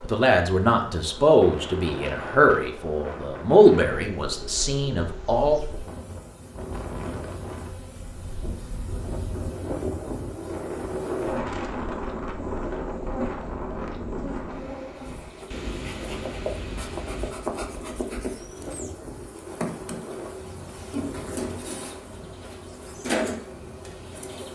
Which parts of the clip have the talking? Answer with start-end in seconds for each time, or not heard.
0.0-5.6.